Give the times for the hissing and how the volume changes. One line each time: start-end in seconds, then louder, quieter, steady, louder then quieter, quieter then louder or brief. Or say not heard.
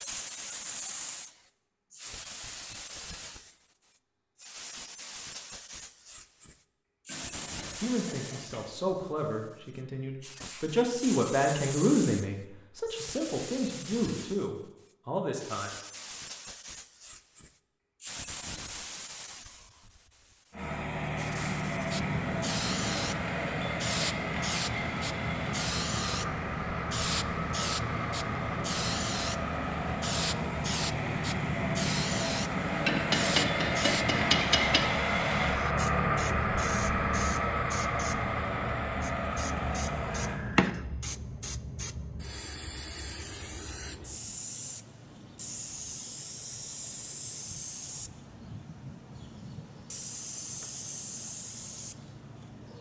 0.0-52.7 louder then quieter.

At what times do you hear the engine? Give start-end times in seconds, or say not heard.
20.5-40.4.